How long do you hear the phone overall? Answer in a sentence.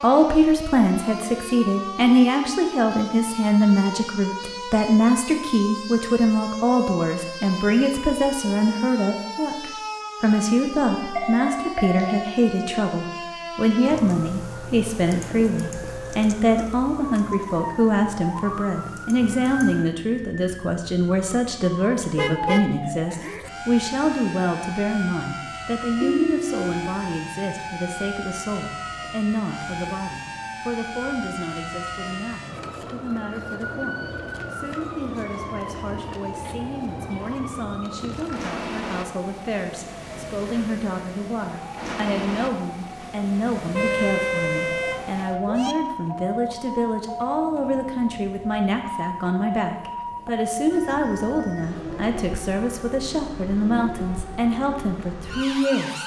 You can hear the phone for 3 seconds altogether.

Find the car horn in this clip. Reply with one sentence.
You can hear the car horn from 22.1 to 23.5 s and from 43.8 to 45.8 s.